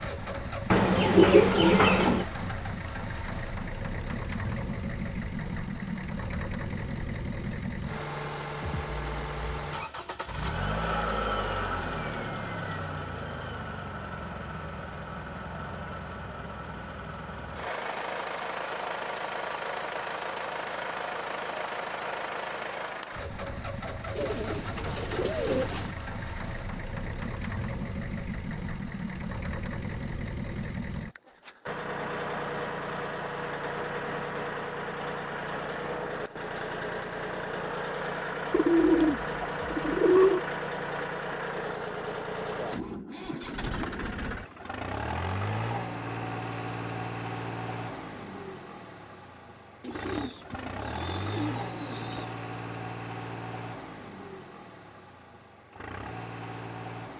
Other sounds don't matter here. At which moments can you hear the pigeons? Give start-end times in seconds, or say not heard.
0.7-2.2, 24.1-25.9, 38.5-40.5, 49.8-52.3.